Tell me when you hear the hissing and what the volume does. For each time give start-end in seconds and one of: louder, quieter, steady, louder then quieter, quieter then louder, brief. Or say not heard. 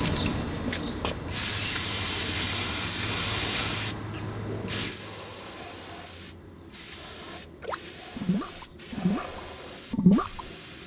0.0-10.8 quieter.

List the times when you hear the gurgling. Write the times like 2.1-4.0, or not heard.
7.6-10.4.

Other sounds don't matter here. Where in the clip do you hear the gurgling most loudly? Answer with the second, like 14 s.
10 s.